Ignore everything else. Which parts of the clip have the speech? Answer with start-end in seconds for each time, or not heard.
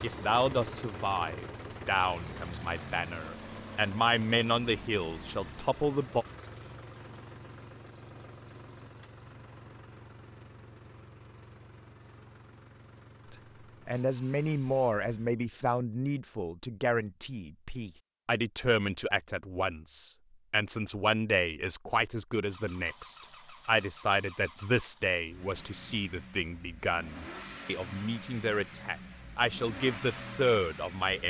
0.0-6.2, 13.3-31.2.